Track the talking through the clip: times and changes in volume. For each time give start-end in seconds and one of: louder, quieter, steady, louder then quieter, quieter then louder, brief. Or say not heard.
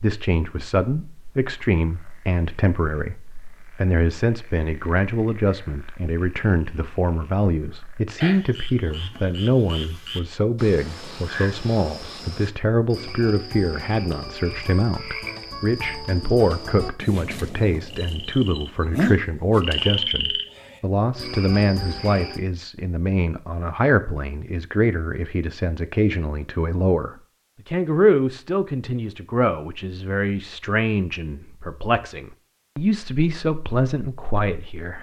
0.0-34.9 steady.